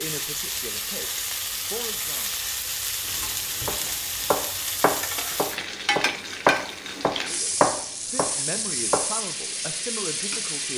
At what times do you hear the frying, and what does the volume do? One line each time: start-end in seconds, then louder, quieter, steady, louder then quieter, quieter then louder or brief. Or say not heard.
0.0-10.7 steady.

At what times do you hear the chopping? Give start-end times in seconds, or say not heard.
3.0-9.1.